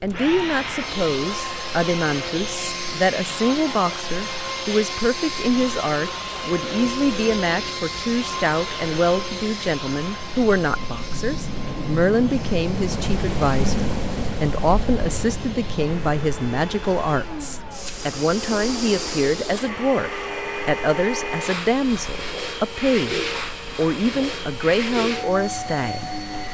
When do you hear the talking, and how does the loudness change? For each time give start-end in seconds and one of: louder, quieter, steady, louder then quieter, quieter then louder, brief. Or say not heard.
0.0-26.5 steady.